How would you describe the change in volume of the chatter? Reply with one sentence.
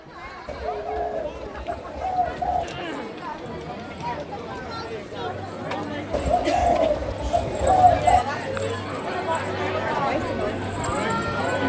The loudness of the chatter goes up.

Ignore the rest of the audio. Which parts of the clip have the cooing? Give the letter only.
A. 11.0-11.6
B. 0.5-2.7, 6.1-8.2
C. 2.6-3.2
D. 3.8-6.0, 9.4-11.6
B.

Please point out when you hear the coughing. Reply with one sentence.
You can hear the coughing from 2.6 to 3.2 s.